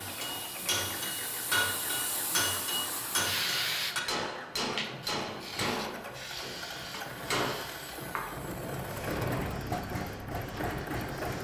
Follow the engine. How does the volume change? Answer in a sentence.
The volume of the engine goes up.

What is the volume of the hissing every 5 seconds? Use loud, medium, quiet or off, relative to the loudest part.
loud, medium, medium.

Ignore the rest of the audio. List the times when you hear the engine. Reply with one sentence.
You can hear the engine from 0.0 to 11.4 s.